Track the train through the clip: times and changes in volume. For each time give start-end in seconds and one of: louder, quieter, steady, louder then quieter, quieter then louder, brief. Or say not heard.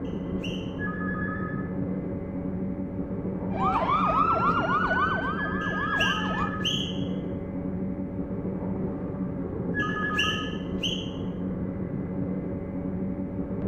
0.0-13.6 steady.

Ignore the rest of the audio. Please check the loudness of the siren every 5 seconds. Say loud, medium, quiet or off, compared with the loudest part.
loud, medium, off.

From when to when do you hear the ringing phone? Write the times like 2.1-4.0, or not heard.
0.8-1.6, 5.3-6.7, 9.7-10.5.